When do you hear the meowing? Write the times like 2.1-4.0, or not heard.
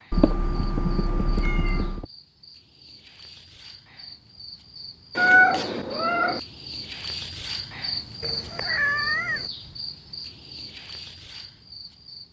0.1-2.0, 5.2-6.4, 8.2-9.5.